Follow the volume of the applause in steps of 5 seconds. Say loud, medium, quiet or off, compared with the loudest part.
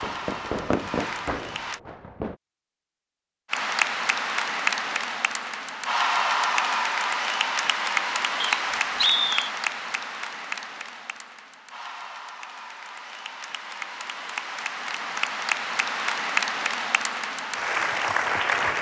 loud, loud, medium, loud.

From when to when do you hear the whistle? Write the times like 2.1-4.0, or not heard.
8.4-9.5.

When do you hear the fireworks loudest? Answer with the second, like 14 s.
1 s.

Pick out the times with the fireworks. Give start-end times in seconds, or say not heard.
0.0-2.4.